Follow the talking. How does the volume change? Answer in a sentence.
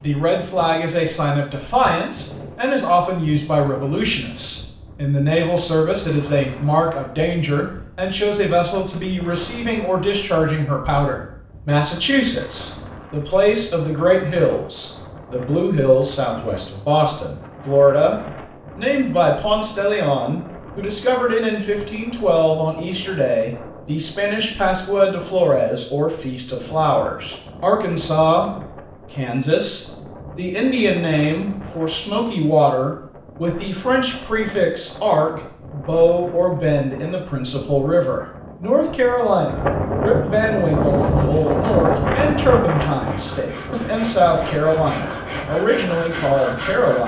The volume of the talking stays about the same.